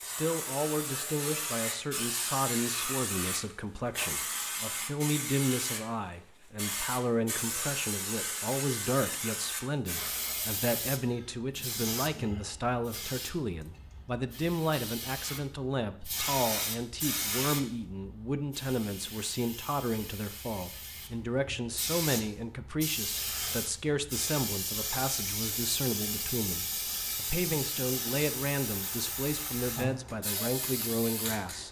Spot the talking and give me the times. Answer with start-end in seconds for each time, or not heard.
0.1-31.6.